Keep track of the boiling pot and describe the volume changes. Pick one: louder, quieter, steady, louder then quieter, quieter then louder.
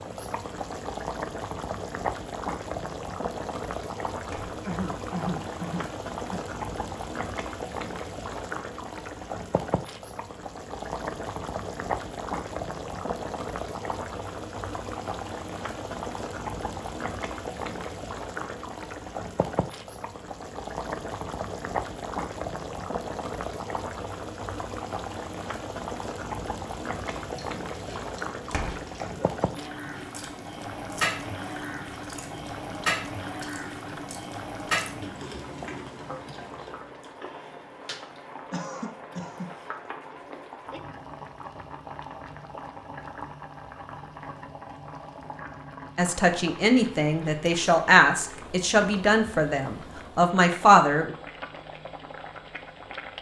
quieter.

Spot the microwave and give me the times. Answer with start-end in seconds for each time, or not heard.
not heard.